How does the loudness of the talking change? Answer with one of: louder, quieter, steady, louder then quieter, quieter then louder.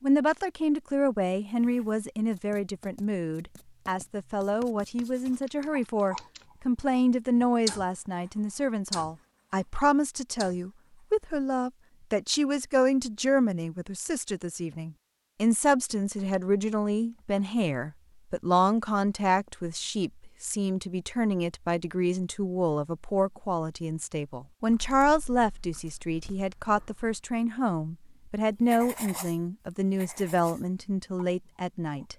steady.